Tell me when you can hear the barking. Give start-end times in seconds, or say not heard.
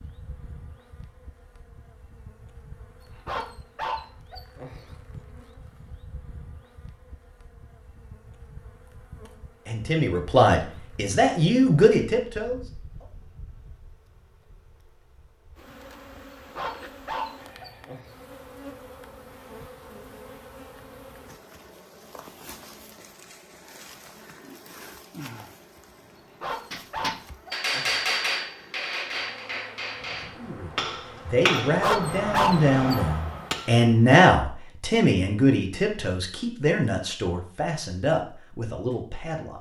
3.2-5.0, 16.6-18.2, 26.4-28.1, 31.8-33.0.